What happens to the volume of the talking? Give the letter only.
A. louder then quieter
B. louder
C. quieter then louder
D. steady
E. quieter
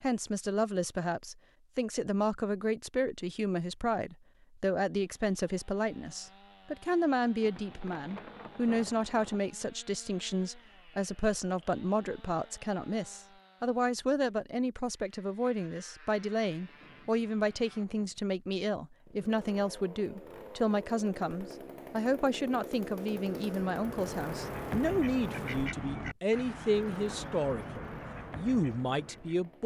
D.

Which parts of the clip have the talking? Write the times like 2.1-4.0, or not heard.
0.0-29.6.